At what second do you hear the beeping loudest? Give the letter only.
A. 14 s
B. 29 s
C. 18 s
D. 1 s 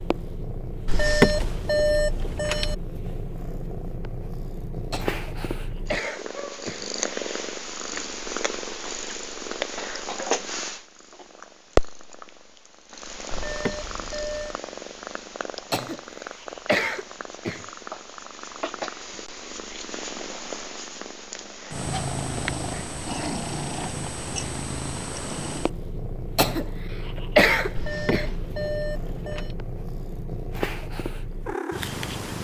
D.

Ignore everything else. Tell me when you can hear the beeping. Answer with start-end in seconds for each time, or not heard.
0.8-2.8, 13.3-14.6, 27.7-29.6.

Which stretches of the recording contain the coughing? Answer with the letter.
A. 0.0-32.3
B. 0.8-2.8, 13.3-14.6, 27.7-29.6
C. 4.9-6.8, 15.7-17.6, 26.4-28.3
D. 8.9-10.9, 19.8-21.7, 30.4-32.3
C.